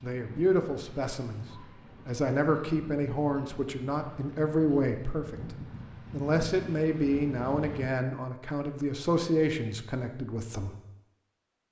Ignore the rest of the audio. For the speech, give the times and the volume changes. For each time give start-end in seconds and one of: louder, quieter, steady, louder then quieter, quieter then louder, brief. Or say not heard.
0.0-10.8 steady.